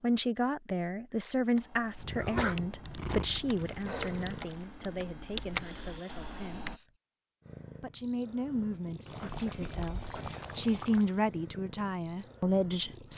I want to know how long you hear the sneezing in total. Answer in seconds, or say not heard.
3 s.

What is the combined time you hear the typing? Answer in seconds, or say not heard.
5 s.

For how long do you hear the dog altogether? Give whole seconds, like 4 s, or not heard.
not heard.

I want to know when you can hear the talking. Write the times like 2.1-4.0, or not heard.
0.0-6.9, 7.8-13.1.